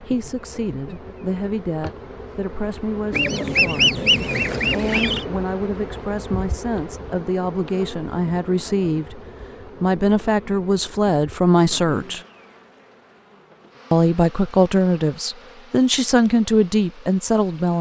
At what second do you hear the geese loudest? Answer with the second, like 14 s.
4 s.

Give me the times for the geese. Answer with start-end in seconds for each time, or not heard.
3.1-5.2.